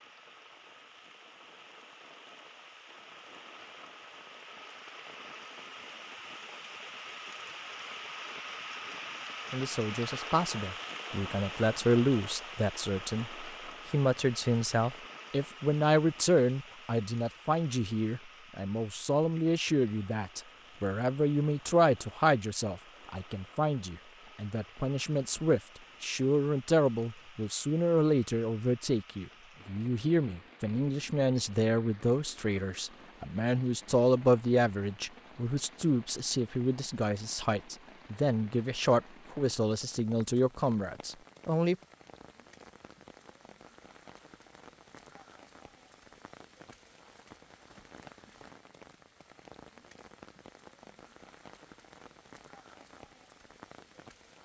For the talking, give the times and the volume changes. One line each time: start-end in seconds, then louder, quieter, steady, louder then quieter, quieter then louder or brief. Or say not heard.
9.5-41.8 steady.